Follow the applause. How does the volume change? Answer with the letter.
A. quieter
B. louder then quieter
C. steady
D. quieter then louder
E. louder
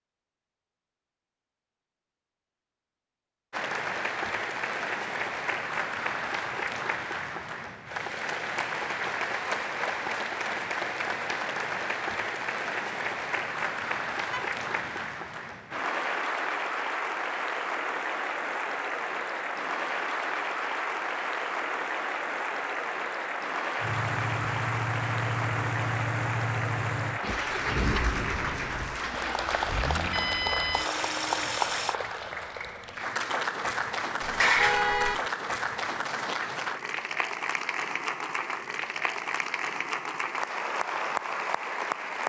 C.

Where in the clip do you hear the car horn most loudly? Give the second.
35 s.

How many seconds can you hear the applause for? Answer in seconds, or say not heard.
39 s.